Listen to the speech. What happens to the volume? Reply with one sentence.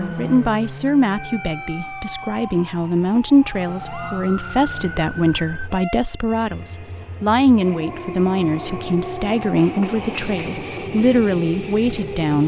The volume of the speech stays about the same.